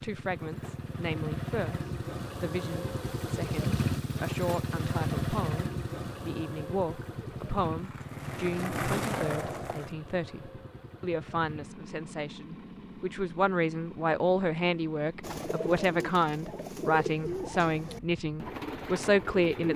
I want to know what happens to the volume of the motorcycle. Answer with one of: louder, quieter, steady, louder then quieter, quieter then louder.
quieter.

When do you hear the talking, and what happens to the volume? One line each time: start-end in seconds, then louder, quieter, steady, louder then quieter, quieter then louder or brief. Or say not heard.
0.0-19.7 louder.